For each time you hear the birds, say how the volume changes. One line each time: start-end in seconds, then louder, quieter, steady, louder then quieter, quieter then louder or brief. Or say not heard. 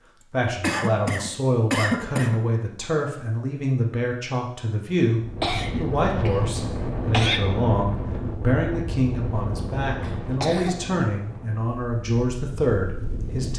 not heard.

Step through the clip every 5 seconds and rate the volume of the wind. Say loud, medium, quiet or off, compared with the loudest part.
off, loud, medium.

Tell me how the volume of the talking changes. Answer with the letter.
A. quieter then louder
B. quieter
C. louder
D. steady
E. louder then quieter
D.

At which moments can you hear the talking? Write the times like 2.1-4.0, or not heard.
0.3-13.5.